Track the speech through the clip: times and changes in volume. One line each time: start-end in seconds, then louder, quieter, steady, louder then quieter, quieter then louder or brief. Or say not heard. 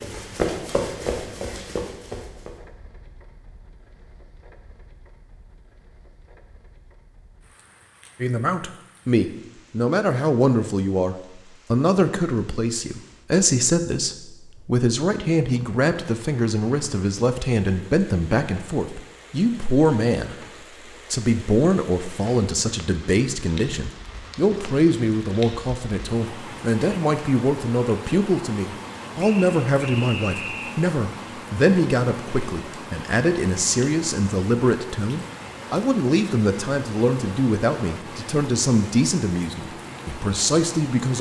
8.2-20.4 steady
21.1-41.1 steady.